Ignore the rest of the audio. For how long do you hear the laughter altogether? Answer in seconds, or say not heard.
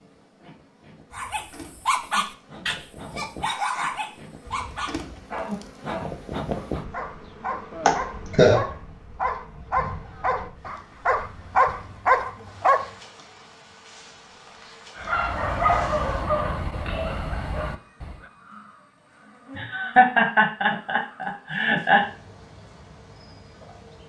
3 s.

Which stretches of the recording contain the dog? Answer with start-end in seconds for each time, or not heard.
1.1-12.9, 14.9-18.1.